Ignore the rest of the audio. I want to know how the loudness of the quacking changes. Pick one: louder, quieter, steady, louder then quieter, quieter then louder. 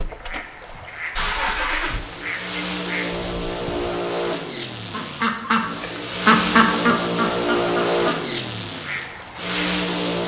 louder then quieter.